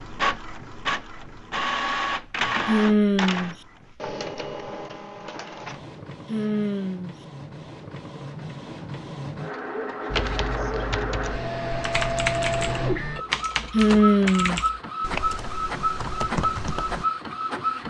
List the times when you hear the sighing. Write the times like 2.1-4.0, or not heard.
2.6-3.5, 6.2-7.2, 13.7-14.6.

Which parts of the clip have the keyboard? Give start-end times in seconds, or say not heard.
10.1-17.1.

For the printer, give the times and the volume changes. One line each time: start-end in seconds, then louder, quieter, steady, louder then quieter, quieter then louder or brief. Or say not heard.
0.0-17.8 quieter then louder.